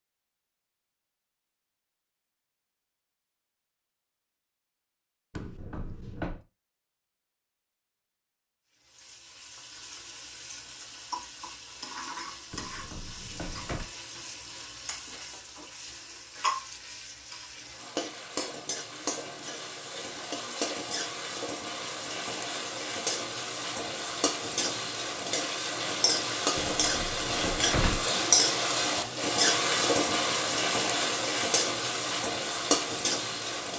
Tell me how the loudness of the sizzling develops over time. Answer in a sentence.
The loudness of the sizzling goes up.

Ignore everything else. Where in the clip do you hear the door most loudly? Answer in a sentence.
The volume of the door peaks at 28 seconds.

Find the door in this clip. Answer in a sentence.
You can hear the door from 5.3 to 6.4 s, from 12.5 to 13.9 s and from 26.6 to 28.1 s.